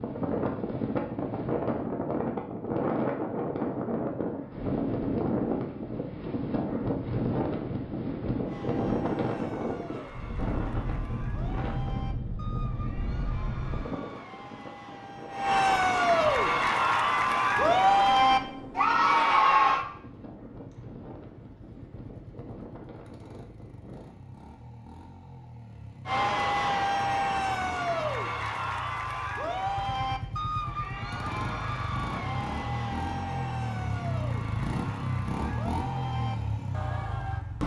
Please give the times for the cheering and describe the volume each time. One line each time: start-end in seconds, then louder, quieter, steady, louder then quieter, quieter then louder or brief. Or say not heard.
8.4-19.9 louder
26.1-37.5 quieter.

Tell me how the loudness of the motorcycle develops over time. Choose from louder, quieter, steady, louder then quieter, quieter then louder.
louder.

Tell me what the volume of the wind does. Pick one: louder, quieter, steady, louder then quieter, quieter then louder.
quieter.